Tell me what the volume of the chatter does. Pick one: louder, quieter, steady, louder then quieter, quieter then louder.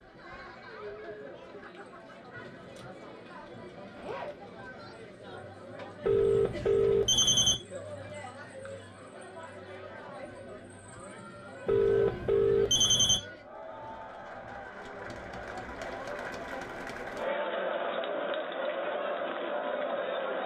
louder.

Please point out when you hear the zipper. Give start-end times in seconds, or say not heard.
4.0-4.4.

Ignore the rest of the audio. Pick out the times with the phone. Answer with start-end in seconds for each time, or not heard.
6.0-7.5, 11.7-13.2.